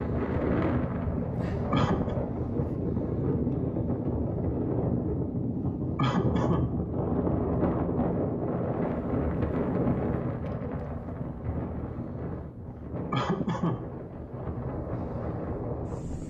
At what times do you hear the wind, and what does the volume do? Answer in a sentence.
The wind can be heard from 0.0 to 16.2 s, getting quieter.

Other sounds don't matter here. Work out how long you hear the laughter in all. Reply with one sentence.
You can hear the laughter for 2 seconds altogether.